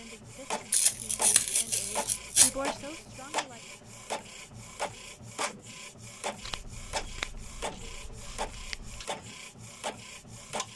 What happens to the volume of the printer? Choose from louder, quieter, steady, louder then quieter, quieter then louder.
steady.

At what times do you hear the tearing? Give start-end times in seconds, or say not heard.
0.7-2.5, 6.4-9.1.